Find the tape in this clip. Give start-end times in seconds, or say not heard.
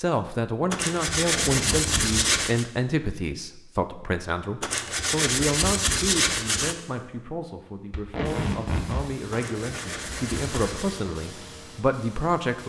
1.1-2.2, 7.9-9.1.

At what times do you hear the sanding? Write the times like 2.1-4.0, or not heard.
0.7-2.6, 4.6-6.8, 9.3-11.0.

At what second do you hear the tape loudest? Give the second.
8 s.